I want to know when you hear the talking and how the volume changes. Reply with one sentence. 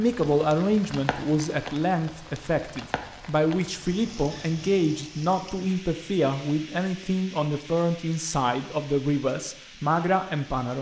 The talking can be heard from 0.0 to 10.7 s, at a steady volume.